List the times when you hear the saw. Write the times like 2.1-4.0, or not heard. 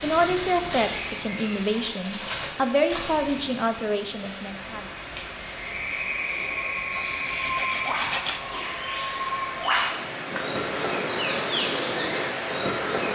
7.0-8.6.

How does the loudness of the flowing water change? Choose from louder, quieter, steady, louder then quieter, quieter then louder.
louder.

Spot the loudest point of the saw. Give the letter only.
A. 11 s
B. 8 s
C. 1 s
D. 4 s
B.